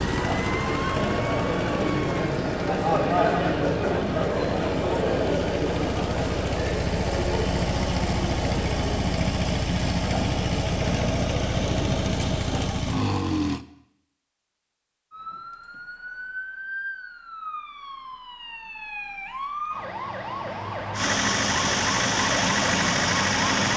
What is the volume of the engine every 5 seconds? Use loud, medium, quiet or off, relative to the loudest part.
medium, loud, loud, off, loud.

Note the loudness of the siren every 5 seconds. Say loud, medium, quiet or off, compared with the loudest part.
medium, off, off, medium, loud.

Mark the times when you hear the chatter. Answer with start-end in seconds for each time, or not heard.
0.1-12.8.